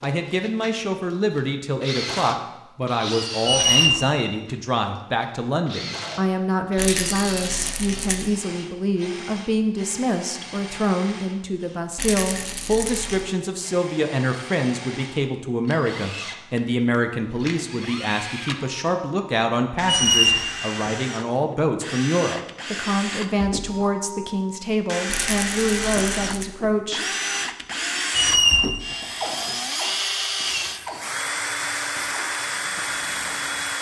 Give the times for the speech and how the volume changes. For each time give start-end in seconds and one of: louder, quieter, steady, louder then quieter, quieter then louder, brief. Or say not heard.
0.0-27.0 steady.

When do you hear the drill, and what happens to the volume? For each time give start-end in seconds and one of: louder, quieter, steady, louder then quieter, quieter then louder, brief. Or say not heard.
0.0-33.7 quieter then louder.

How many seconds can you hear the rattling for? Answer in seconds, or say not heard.
4 s.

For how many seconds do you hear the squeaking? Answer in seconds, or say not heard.
2 s.